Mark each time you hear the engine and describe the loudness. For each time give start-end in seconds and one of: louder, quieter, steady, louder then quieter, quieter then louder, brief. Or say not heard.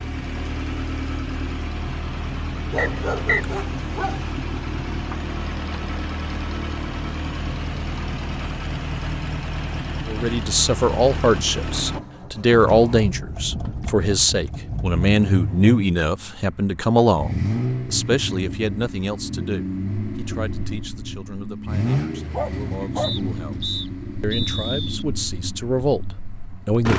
0.0-26.9 steady.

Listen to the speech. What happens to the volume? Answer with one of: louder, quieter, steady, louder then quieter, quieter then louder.
quieter then louder.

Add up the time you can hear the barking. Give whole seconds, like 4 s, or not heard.
3 s.